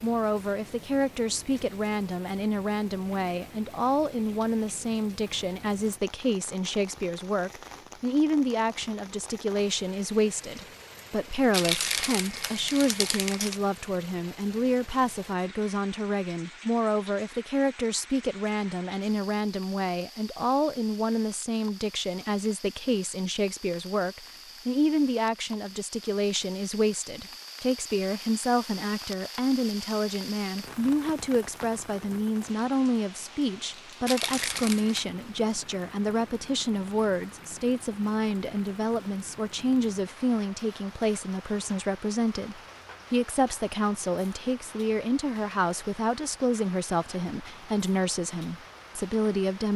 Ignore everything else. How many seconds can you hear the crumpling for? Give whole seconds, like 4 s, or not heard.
3 s.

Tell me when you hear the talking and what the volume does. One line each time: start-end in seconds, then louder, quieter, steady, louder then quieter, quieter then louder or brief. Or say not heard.
0.0-49.7 steady.